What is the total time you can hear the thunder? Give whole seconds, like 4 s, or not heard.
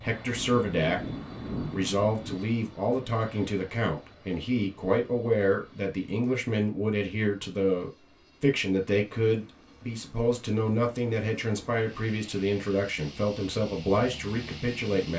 2 s.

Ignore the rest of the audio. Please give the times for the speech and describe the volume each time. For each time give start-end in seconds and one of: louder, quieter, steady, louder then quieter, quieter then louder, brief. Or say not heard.
0.0-15.1 steady.